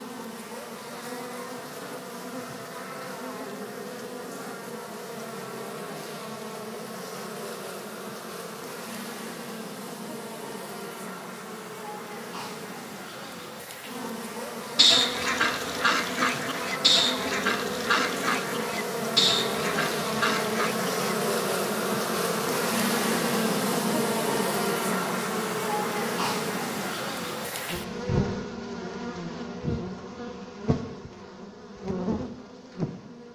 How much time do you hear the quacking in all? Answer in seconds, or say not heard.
6 s.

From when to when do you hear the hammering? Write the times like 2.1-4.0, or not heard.
not heard.